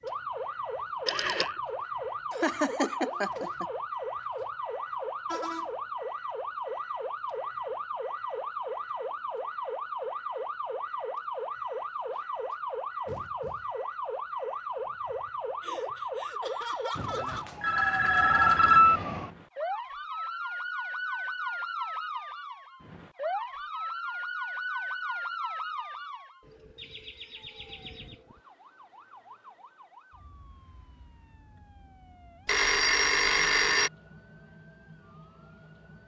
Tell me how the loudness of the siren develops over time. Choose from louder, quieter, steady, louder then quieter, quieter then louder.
quieter.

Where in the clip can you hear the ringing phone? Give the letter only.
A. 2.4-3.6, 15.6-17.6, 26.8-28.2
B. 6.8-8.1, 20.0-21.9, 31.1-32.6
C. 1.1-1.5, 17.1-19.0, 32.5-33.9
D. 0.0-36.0
C.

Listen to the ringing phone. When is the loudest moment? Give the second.
19 s.